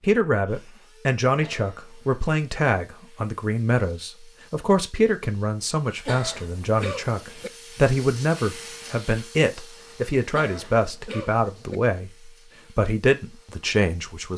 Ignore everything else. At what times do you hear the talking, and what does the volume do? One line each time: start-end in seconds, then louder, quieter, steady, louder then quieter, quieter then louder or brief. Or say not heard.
0.0-14.3 steady.